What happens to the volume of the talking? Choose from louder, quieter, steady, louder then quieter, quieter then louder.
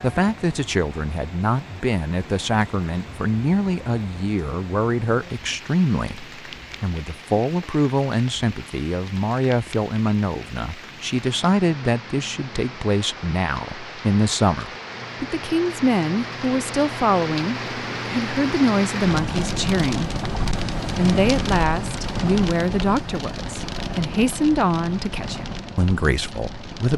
steady.